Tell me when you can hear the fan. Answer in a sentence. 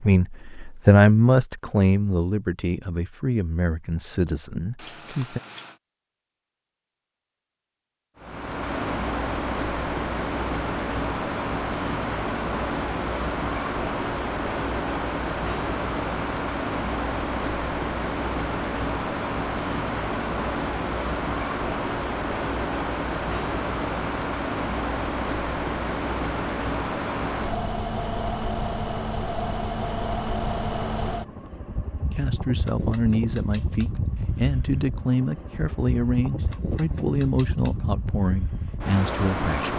You can hear the fan from 8.2 to 39.7 s.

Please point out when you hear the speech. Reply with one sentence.
The speech can be heard from 0.0 to 5.4 s and from 32.1 to 39.7 s.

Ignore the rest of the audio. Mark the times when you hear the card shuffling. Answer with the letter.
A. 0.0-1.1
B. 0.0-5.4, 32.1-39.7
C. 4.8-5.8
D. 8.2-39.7
C.